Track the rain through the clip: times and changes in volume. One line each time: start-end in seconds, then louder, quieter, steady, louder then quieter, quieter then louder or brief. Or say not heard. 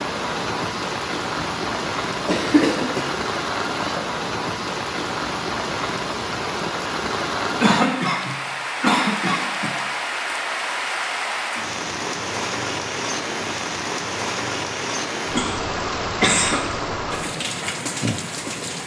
0.0-18.8 steady.